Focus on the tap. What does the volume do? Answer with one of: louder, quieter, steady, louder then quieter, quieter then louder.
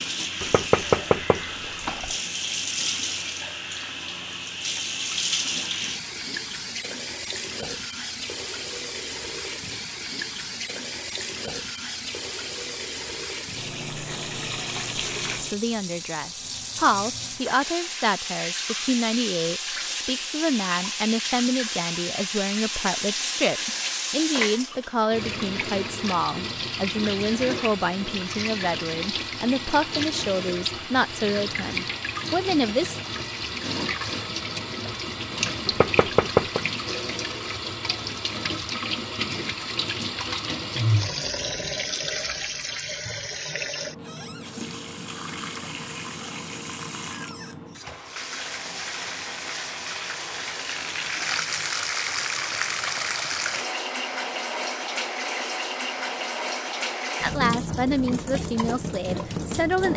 steady.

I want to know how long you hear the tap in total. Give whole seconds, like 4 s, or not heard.
60 s.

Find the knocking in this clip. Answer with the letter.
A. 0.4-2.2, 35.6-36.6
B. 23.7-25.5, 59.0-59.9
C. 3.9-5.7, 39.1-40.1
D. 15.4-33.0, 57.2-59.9
A.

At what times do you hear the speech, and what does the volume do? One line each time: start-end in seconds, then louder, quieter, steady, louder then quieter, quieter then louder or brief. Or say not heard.
15.4-33.0 steady
57.2-59.9 brief.